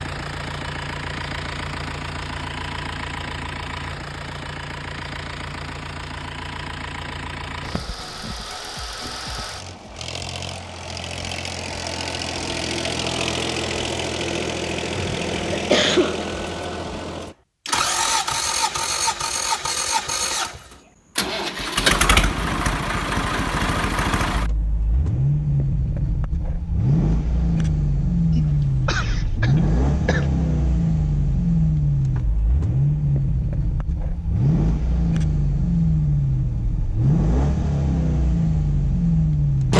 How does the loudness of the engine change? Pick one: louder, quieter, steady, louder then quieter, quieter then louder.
louder.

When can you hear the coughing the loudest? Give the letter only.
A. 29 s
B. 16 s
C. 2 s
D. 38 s
B.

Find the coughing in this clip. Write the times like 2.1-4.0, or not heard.
14.9-16.2, 28.3-30.3.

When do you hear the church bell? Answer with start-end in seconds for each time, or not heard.
not heard.